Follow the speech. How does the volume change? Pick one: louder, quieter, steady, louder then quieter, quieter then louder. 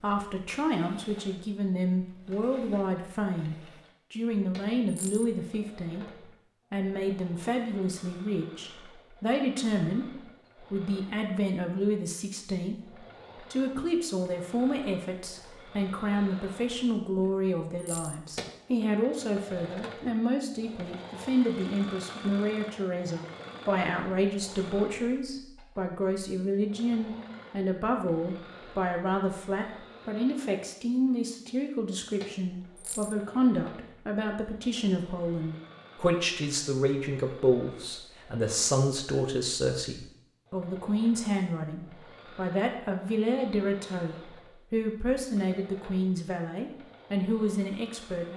steady.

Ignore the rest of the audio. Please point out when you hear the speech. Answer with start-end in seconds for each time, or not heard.
0.0-48.3.